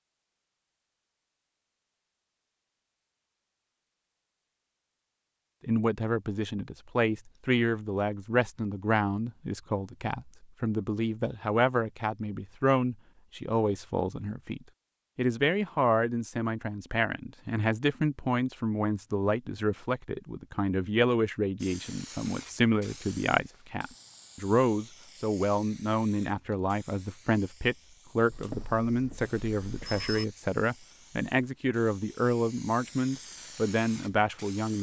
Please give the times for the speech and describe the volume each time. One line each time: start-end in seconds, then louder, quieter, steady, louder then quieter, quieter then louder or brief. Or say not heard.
5.6-34.7 steady.